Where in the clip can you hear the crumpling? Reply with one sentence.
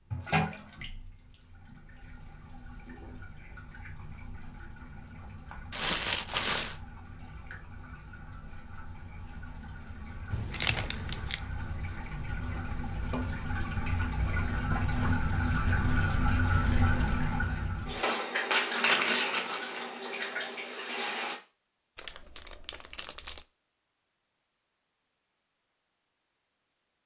The crumpling can be heard from 5.7 to 6.8 s, from 10.3 to 11.3 s and from 21.9 to 23.4 s.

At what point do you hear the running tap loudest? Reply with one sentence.
The volume of the running tap peaks at 19 seconds.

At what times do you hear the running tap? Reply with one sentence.
The running tap can be heard from 0.0 to 21.4 s.